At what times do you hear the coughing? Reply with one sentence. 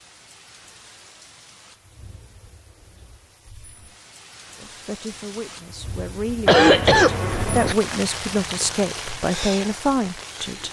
You can hear the coughing from 6.5 to 7.8 s.